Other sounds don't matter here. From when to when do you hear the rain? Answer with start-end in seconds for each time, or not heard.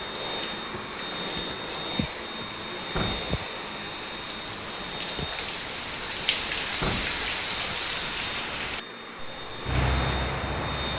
0.0-10.9.